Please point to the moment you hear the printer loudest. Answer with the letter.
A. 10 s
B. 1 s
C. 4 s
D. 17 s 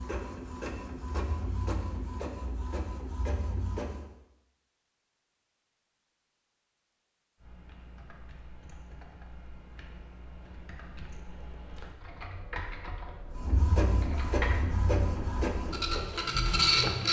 D.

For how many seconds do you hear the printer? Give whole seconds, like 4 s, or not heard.
8 s.